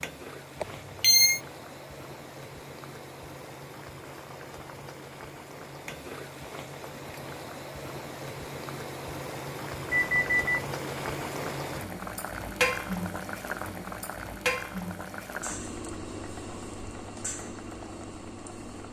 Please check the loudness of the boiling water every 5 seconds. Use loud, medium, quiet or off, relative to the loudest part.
medium, medium, loud, medium.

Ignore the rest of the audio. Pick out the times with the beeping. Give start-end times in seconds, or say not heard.
0.6-1.4, 9.9-10.7.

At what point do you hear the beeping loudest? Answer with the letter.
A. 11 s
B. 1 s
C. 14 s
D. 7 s
B.